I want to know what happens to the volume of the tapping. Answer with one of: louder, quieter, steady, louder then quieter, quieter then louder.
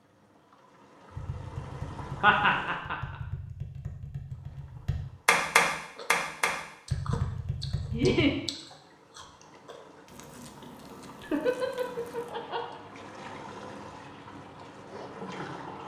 louder then quieter.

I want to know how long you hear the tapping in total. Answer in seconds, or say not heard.
7 s.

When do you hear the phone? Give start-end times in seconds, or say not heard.
not heard.